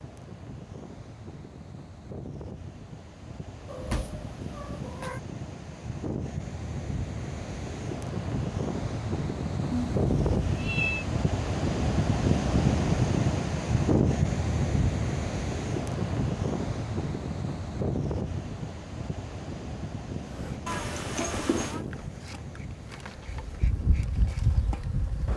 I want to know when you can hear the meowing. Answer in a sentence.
The meowing can be heard from 3.6 to 5.2 s, from 9.7 to 11.1 s and from 20.6 to 21.8 s.